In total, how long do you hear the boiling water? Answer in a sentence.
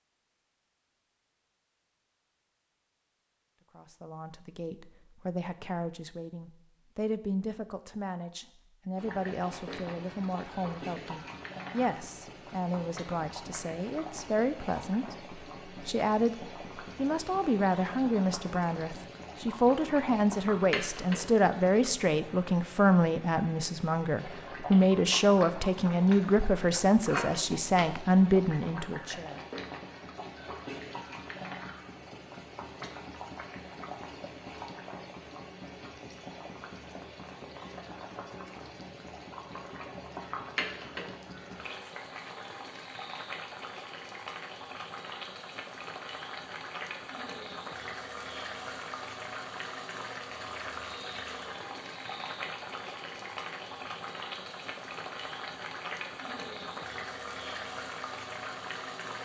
The boiling water can be heard for 50 seconds in total.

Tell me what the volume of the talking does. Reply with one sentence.
The volume of the talking goes up.